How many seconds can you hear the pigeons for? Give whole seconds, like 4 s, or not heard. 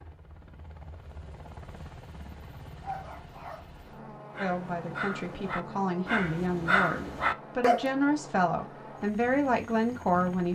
not heard.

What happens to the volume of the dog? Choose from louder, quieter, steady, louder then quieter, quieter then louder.
louder.